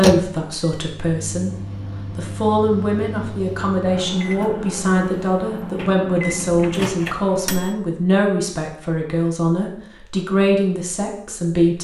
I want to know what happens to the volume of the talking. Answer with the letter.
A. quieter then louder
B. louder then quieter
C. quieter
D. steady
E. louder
D.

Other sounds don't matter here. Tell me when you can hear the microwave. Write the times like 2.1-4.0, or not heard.
0.0-7.8.